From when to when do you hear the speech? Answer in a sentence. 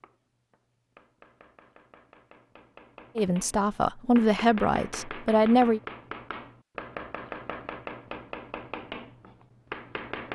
The speech can be heard from 3.1 to 5.8 s.